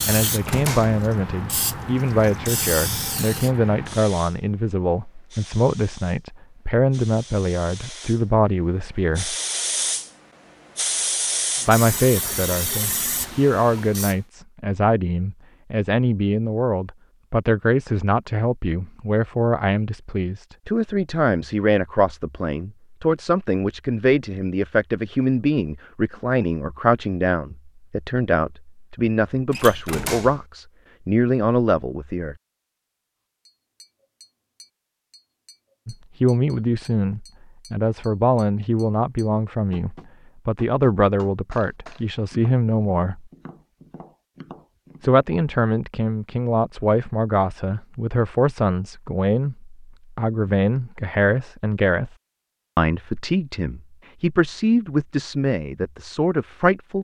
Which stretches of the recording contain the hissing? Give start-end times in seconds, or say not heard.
0.0-14.2.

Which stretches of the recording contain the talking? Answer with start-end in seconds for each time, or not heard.
0.1-9.3, 11.7-32.4, 35.9-43.3, 45.0-52.1, 52.8-57.0.